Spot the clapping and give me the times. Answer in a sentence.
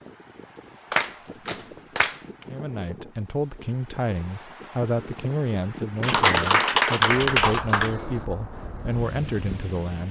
The clapping can be heard from 0.9 to 2.2 s and from 6.0 to 8.0 s.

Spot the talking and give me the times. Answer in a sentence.
You can hear the talking from 2.5 to 10.0 s.